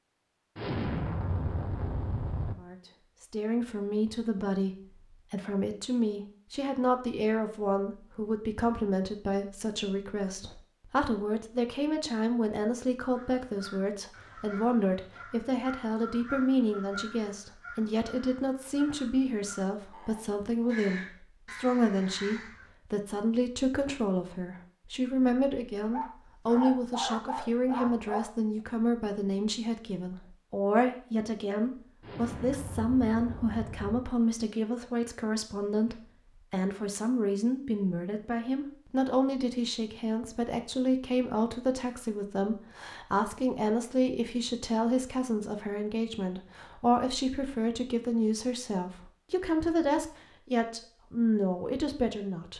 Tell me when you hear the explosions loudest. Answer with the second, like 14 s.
1 s.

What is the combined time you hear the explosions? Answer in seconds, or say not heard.
4 s.